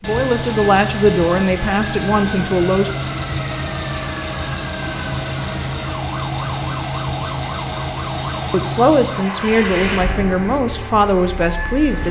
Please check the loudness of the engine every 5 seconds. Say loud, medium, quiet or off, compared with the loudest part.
loud, loud, medium.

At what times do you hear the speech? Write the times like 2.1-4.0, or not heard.
0.0-2.9, 8.5-12.0.